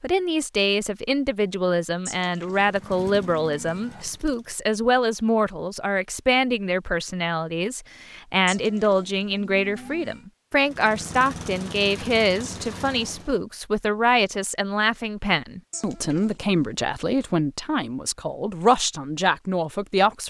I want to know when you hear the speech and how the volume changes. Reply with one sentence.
The speech can be heard from 0.0 to 20.2 s, at a steady volume.